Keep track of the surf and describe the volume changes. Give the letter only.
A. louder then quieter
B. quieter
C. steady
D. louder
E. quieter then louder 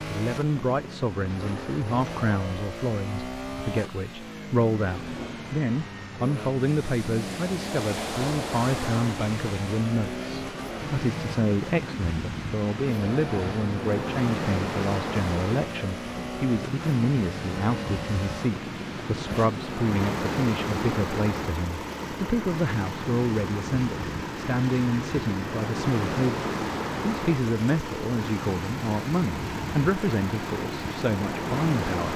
C.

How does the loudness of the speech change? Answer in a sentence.
The loudness of the speech stays about the same.